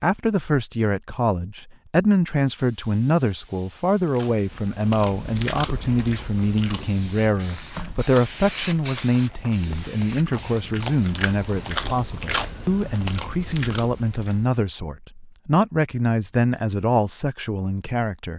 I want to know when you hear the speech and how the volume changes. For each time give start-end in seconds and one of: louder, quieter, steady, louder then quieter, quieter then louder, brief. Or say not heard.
0.0-18.3 steady.